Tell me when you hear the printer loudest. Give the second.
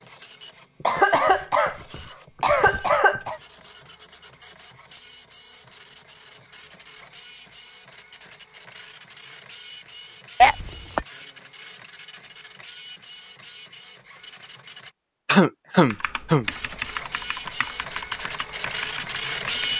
19 s.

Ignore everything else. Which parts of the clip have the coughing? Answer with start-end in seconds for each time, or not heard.
0.8-3.4, 10.4-11.1, 15.2-16.4.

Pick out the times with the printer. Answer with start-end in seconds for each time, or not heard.
0.0-14.9, 16.4-19.7.